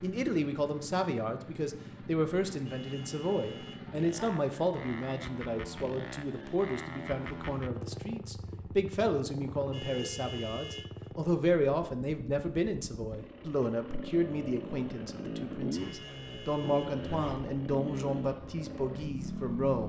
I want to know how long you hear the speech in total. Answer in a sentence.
The speech can be heard for 20 seconds in total.